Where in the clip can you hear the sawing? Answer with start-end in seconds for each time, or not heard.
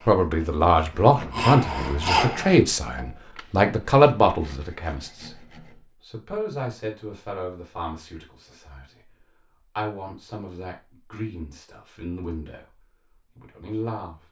0.0-5.8.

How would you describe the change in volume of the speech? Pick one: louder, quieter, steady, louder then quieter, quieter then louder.
quieter.